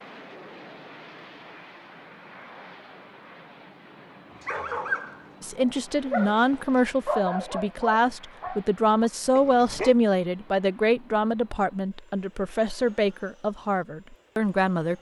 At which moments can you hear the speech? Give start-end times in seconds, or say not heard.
5.4-14.9.